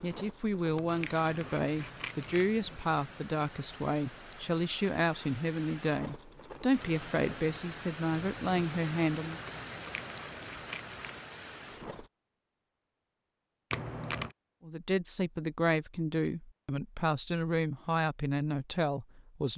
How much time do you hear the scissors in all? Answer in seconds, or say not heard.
4 s.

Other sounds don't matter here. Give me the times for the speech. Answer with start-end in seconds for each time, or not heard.
0.0-9.4, 14.7-19.5.